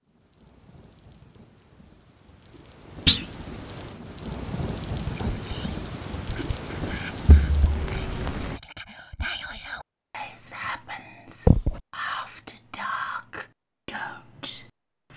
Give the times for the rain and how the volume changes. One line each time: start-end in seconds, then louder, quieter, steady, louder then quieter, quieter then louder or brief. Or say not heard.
0.0-8.6 louder.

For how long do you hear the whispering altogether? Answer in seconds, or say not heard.
10 s.